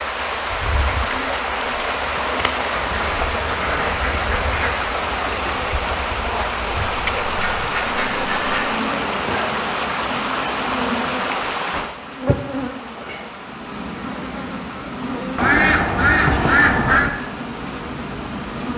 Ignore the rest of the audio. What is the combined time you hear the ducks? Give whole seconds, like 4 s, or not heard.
6 s.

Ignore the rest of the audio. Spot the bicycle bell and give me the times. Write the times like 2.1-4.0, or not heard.
not heard.